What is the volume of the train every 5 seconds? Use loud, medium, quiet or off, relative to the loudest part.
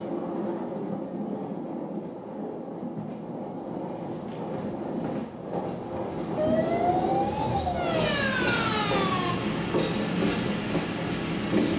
medium, loud, loud.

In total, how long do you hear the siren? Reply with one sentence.
The siren can be heard for 3 seconds in total.